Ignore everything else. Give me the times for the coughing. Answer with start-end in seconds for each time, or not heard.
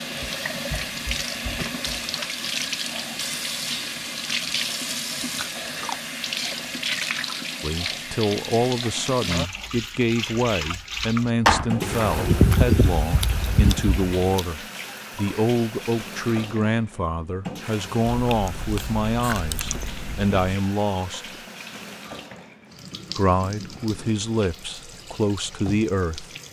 not heard.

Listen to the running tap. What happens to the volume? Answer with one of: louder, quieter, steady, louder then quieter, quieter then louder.
quieter.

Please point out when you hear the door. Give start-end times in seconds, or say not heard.
11.4-12.6.